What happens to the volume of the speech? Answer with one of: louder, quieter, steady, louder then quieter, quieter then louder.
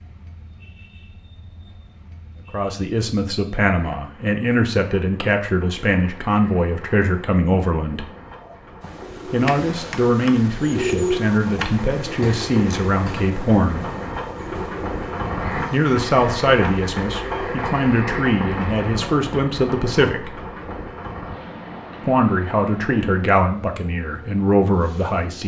steady.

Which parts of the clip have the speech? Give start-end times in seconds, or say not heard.
2.5-8.1, 9.3-13.8, 15.7-20.4, 22.0-25.4.